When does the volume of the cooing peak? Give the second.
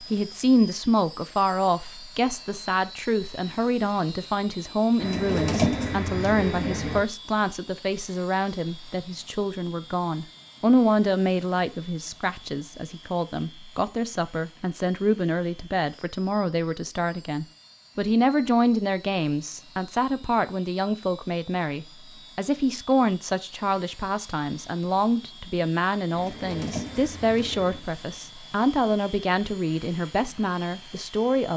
6 s.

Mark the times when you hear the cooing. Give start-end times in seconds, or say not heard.
5.0-7.0, 26.1-27.8.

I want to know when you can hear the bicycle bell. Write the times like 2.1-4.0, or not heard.
not heard.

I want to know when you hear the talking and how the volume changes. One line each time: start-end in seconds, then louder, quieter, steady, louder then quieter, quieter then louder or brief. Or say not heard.
0.0-31.5 steady.